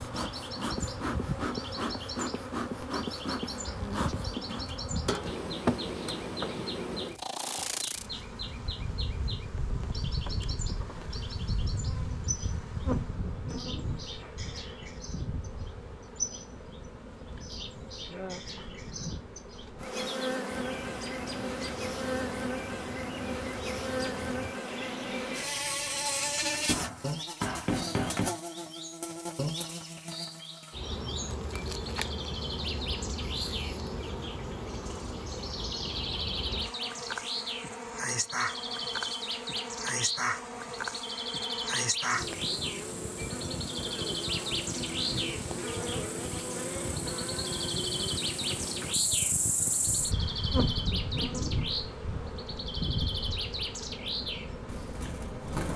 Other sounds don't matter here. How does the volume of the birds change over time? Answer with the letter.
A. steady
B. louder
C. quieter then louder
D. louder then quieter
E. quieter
B.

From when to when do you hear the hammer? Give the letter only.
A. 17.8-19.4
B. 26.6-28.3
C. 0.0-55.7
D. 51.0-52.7
B.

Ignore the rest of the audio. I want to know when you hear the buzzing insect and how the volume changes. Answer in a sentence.
You can hear the buzzing insect from 0.0 to 55.7 s, at a steady volume.